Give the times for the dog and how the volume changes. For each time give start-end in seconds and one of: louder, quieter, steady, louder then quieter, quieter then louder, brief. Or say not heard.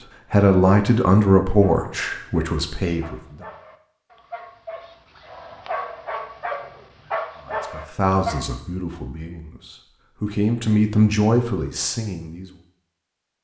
1.6-8.6 louder.